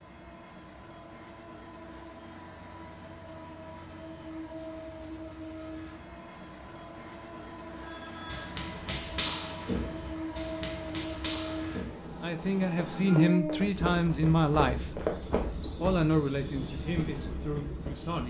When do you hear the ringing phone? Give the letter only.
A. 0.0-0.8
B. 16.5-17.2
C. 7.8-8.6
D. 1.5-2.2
C.